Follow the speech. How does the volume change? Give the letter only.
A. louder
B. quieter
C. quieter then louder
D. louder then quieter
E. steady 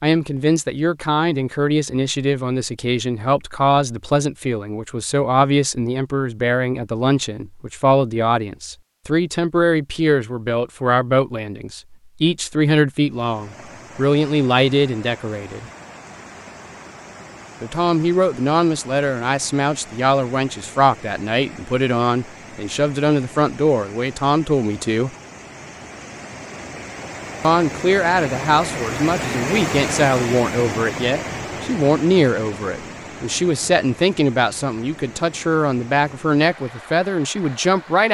E.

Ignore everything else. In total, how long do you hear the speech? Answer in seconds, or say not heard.
34 s.